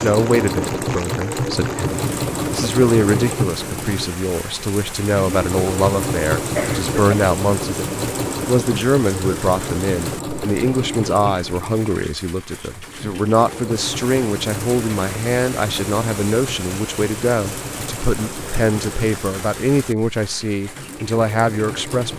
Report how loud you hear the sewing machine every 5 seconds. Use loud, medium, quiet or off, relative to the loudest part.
loud, loud, medium, medium, medium.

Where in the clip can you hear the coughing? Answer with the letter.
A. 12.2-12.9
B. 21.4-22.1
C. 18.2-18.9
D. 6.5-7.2
D.